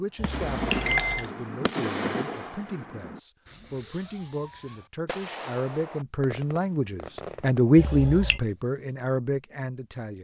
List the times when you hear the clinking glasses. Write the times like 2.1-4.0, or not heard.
0.1-1.3, 7.8-8.4.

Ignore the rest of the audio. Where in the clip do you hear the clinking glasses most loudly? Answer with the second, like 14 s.
1 s.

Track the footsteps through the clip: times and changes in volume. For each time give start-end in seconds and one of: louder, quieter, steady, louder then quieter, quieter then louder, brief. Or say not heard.
not heard.